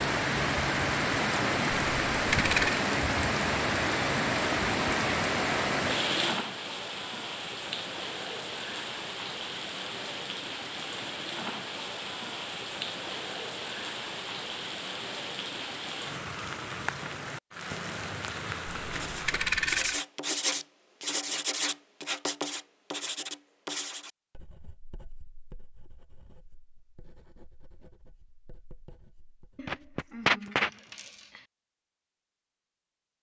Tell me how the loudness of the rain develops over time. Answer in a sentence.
The loudness of the rain goes down.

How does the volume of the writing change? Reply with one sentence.
The loudness of the writing goes down.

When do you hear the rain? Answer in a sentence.
The rain can be heard from 0.0 to 19.8 s.